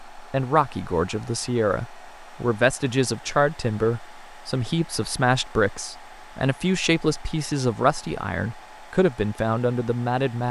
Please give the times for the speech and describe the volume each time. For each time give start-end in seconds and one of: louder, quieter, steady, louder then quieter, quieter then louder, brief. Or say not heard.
0.1-10.4 steady.